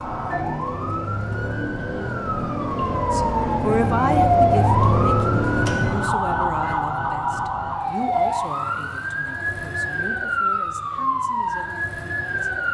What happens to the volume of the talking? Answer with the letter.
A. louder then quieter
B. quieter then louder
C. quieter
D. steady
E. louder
C.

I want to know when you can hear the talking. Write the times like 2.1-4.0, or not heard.
3.1-12.6.